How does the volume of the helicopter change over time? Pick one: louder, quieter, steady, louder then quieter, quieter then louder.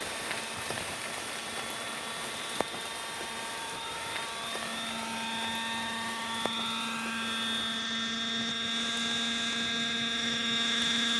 louder.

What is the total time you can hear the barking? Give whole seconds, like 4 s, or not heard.
not heard.